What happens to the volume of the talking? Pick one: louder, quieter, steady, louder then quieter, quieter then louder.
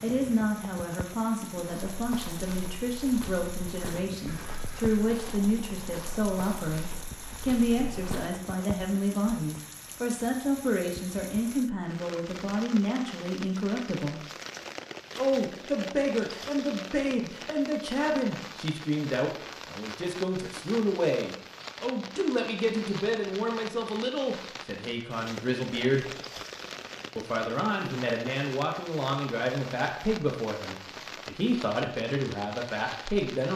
steady.